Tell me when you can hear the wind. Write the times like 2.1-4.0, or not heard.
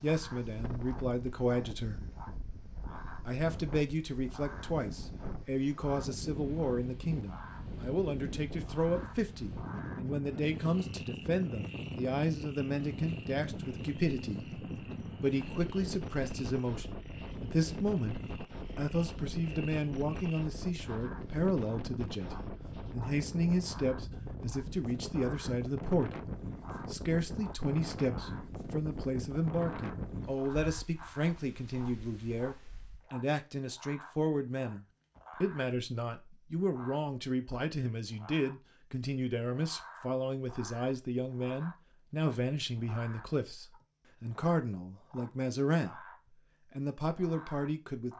0.0-33.0.